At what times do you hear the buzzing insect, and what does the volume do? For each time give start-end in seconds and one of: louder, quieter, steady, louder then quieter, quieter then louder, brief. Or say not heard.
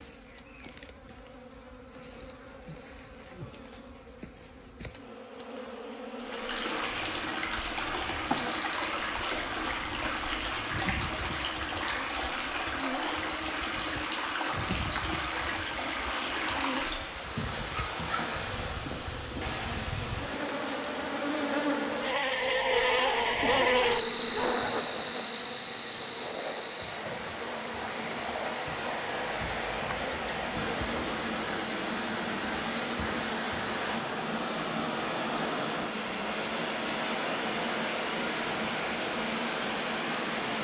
0.0-40.6 louder then quieter.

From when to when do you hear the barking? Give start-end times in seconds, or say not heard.
17.7-18.2, 22.7-24.7.